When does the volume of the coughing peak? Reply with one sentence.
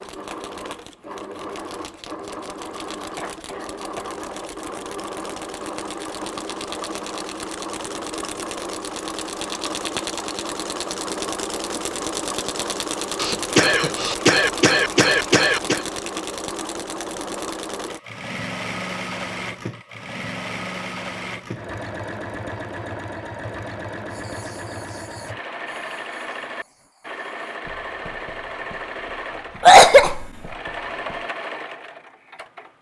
The loudest moment of the coughing is at 30 seconds.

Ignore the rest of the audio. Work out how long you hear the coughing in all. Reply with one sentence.
The coughing can be heard for 4 seconds in total.